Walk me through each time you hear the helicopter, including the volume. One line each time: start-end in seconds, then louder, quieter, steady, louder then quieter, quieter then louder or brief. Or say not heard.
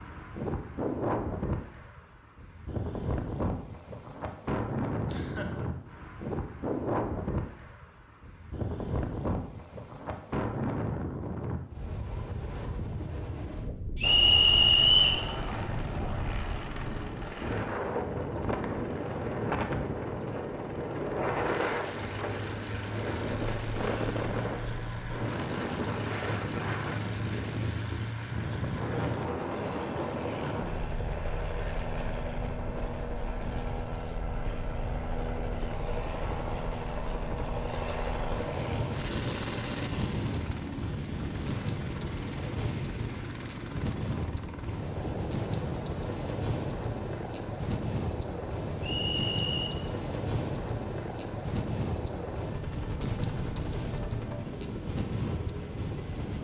14.0-56.3 steady.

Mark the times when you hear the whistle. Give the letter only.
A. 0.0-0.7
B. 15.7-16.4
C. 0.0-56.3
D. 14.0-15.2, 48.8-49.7
D.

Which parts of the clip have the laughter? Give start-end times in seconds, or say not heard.
5.0-5.7.